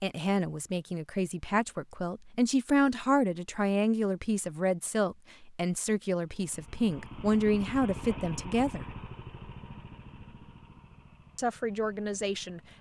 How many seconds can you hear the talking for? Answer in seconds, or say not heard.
10 s.